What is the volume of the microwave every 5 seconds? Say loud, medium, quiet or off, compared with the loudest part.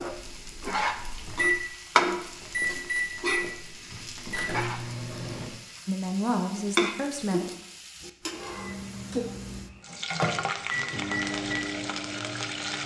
loud, medium, loud.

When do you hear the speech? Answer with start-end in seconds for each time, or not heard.
5.8-7.5.